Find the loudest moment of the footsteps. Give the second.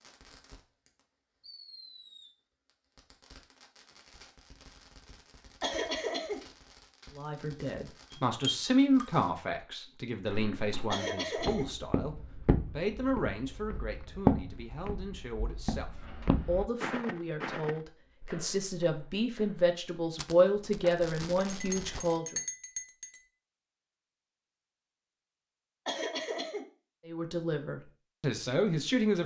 14 s.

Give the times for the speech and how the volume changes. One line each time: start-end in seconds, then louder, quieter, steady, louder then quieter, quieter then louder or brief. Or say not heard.
7.2-22.4 quieter then louder
27.1-29.2 brief.